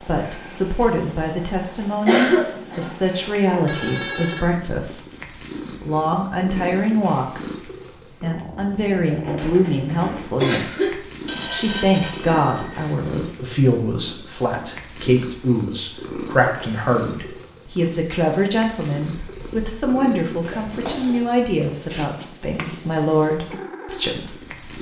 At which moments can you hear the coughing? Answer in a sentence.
The coughing can be heard from 2.0 to 3.0 s, from 9.2 to 11.0 s and from 20.4 to 21.2 s.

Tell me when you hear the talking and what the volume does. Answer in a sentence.
The talking can be heard from 0.0 to 24.7 s, at a steady volume.